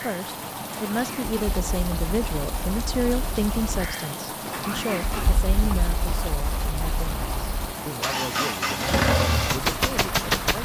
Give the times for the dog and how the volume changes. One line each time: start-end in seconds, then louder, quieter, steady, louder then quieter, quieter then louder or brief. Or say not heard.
not heard.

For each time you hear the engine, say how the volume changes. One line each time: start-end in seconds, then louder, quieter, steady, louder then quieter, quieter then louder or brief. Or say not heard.
0.0-10.5 louder.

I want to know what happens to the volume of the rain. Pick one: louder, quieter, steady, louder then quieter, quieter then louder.
steady.